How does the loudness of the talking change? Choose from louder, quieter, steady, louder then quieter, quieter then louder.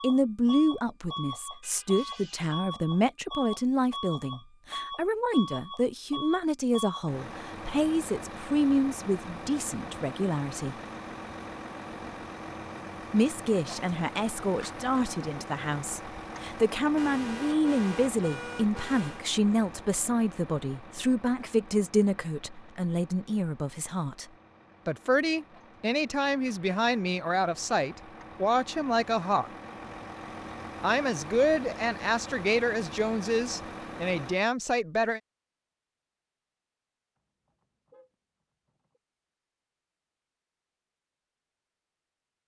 steady.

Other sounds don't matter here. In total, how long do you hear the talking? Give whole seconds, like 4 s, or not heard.
31 s.